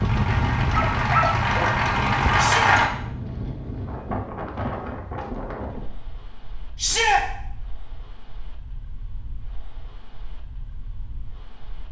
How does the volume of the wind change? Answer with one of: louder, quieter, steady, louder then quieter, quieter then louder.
quieter.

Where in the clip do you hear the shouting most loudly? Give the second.
7 s.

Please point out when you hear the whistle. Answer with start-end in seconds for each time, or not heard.
not heard.